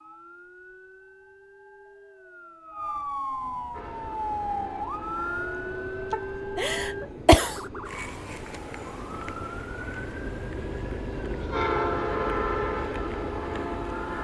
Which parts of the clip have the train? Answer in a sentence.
The train can be heard from 3.7 to 14.1 s.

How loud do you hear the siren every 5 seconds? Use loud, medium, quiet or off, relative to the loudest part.
loud, loud, medium.